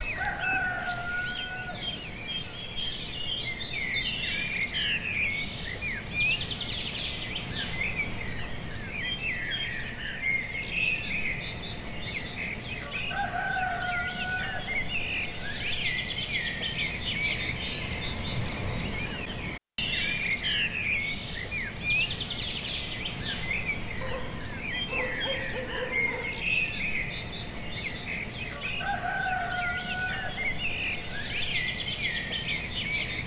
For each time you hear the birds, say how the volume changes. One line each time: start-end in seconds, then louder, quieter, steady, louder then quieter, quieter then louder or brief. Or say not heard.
0.0-33.2 steady.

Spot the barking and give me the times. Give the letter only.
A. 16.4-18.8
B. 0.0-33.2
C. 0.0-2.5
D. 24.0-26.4
D.